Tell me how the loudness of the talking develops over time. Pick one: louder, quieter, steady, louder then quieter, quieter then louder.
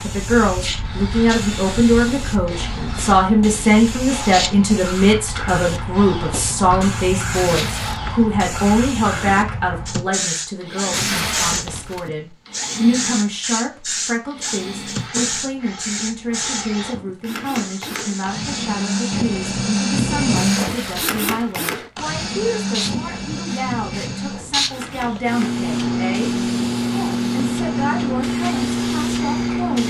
quieter.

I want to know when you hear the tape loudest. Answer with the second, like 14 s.
11 s.